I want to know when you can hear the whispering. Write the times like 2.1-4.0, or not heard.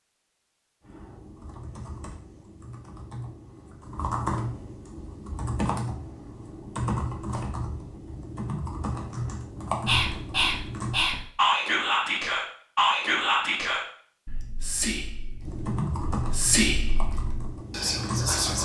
9.8-18.6.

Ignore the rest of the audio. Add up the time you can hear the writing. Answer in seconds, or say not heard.
not heard.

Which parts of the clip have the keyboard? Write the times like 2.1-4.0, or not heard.
0.8-11.0, 15.4-18.6.